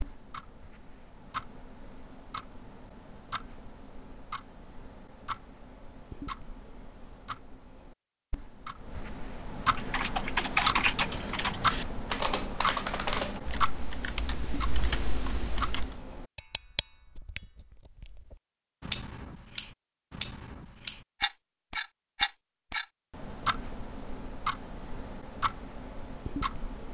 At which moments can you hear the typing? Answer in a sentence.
The typing can be heard from 9.8 to 15.9 s.